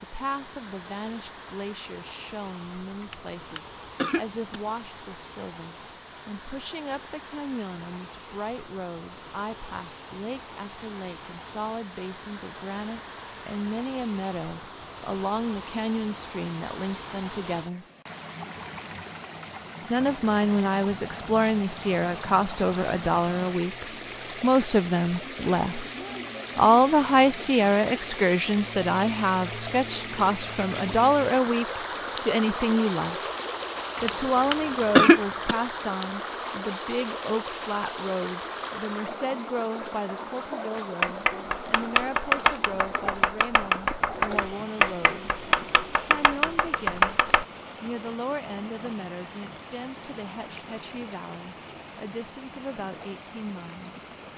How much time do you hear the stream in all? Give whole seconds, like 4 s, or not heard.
54 s.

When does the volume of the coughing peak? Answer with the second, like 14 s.
35 s.